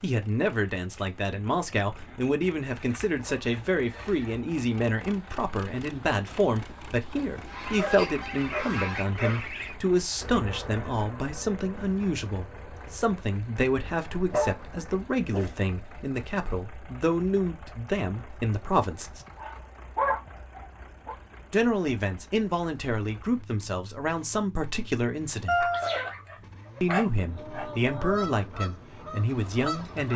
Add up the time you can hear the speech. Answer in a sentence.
You can hear the speech for 27 seconds altogether.